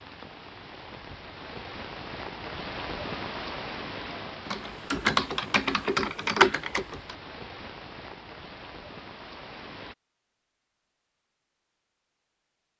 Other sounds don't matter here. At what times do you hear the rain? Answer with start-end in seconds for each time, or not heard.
0.0-9.9.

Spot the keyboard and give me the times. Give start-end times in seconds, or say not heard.
4.5-7.2.